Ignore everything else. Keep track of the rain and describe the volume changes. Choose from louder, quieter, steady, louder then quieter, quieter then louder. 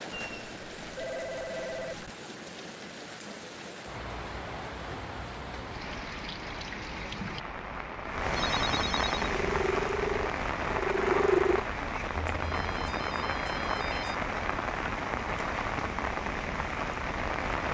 louder.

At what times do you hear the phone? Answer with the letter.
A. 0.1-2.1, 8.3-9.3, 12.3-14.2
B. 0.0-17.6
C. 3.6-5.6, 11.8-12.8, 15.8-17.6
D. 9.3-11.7
A.